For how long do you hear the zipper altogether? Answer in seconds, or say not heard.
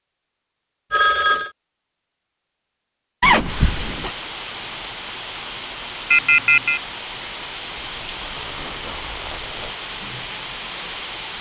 3 s.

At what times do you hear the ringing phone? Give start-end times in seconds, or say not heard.
0.9-1.5, 6.1-6.8.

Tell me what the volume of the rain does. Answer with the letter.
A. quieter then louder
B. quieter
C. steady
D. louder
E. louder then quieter
C.